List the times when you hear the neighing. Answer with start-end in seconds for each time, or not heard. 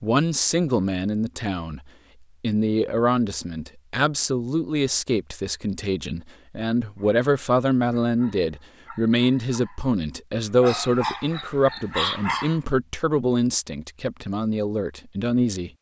not heard.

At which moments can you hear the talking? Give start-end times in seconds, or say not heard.
0.0-15.7.